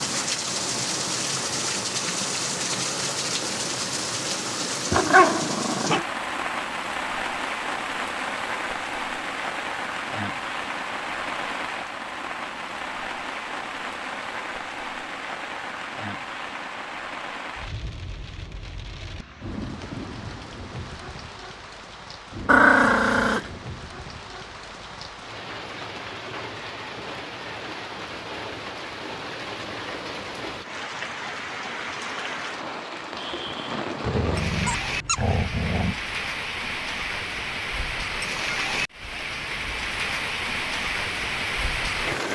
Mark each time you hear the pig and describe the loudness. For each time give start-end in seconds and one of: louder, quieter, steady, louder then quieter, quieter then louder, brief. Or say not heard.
not heard.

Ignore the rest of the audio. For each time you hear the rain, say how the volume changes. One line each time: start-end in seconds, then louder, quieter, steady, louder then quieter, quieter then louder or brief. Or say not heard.
0.0-42.3 quieter then louder.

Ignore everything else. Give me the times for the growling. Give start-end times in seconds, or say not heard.
4.9-6.0, 22.4-23.5, 34.0-36.0.